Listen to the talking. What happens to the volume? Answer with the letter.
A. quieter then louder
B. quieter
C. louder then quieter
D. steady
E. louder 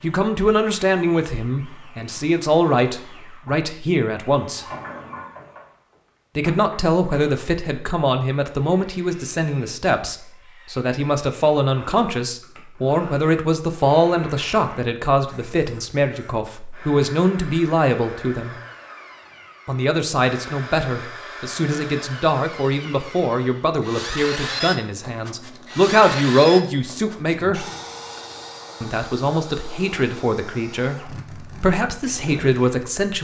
D.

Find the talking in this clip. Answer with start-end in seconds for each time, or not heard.
0.0-4.7, 6.3-18.6, 19.6-27.6, 28.8-33.1.